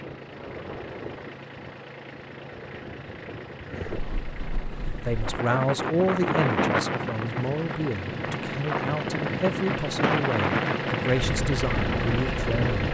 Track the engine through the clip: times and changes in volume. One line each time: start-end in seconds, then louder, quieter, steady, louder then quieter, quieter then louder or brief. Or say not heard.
0.0-12.8 louder.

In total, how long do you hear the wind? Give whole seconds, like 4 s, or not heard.
13 s.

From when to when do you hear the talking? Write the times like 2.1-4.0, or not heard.
5.0-12.8.